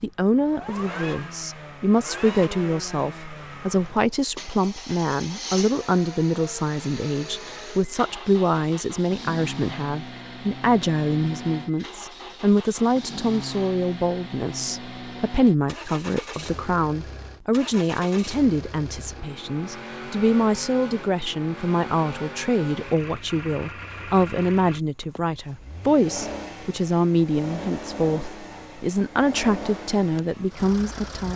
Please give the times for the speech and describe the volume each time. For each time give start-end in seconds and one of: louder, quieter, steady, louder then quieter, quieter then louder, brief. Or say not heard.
0.0-31.3 steady.